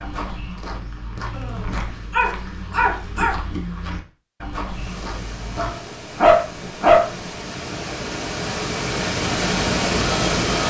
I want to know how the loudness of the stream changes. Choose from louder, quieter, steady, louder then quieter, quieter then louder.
louder.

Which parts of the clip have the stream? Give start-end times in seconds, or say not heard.
4.6-10.6.